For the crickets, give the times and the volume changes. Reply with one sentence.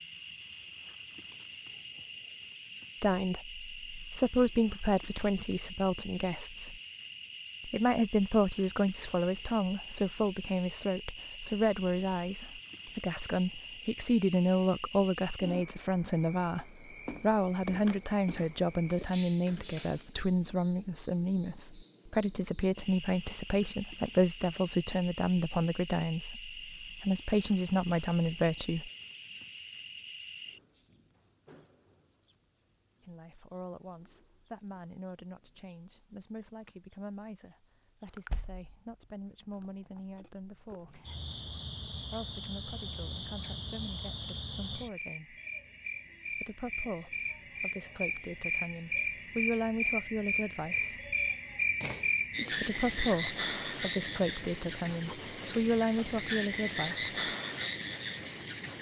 You can hear the crickets from 0.0 to 58.7 s, getting louder.